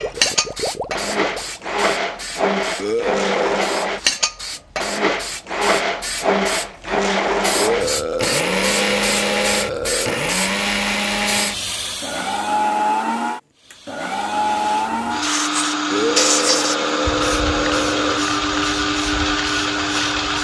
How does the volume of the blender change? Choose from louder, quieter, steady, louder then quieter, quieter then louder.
steady.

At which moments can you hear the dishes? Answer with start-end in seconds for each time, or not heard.
not heard.